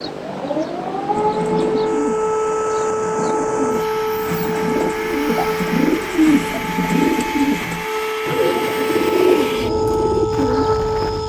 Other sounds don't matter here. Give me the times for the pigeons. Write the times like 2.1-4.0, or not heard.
1.1-11.2.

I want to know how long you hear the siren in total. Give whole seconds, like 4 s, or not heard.
11 s.